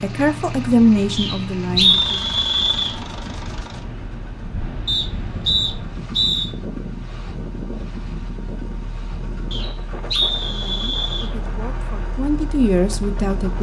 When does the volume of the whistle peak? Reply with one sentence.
The loudest moment of the whistle is at 2 seconds.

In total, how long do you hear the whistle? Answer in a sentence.
The whistle can be heard for 5 seconds in total.